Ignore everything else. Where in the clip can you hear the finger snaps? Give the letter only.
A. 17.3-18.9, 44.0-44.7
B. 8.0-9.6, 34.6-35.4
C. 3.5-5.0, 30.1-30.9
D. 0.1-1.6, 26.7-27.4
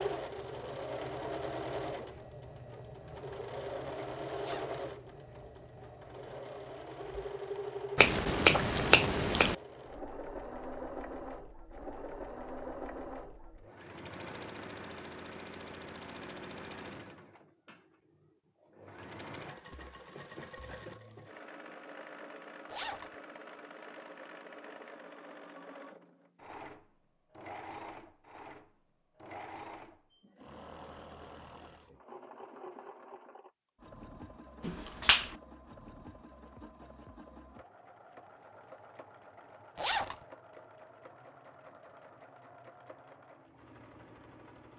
B.